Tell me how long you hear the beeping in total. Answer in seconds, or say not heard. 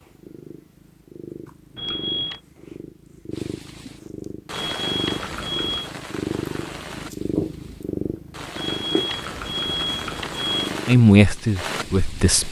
4 s.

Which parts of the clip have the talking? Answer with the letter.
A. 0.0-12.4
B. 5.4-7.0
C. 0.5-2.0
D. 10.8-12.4
D.